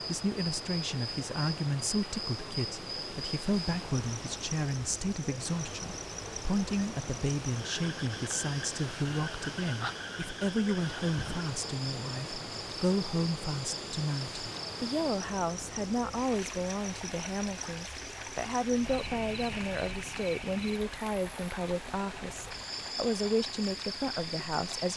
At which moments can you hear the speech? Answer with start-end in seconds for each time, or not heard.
0.1-24.9.